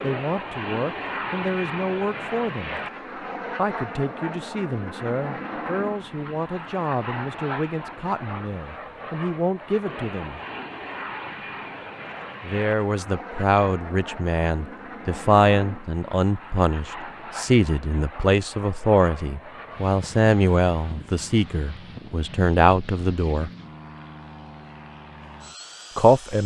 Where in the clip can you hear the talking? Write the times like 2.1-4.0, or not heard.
0.0-2.8, 3.5-10.4, 12.4-23.5, 25.9-26.4.